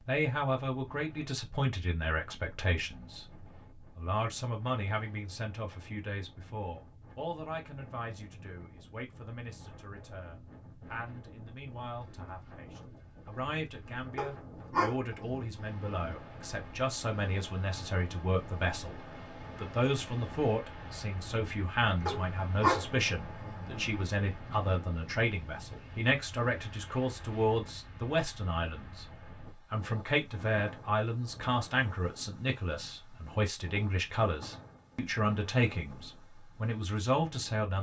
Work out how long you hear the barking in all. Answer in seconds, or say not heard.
4 s.